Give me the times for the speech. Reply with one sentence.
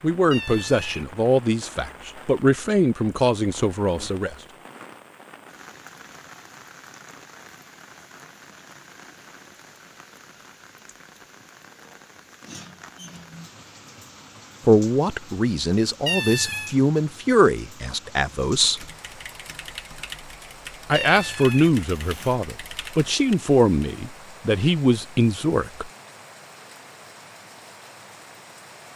You can hear the speech from 0.0 to 4.3 s, from 14.7 to 18.9 s and from 20.9 to 25.9 s.